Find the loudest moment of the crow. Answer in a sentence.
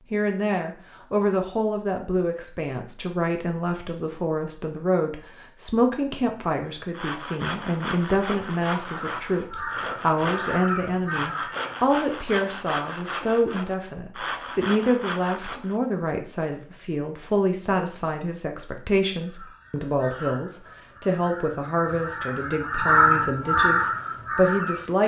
The volume of the crow peaks at 23 seconds.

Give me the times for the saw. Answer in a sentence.
You can hear the saw from 6.7 to 15.8 s.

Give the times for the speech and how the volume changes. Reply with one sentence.
You can hear the speech from 0.1 to 25.0 s, at a steady volume.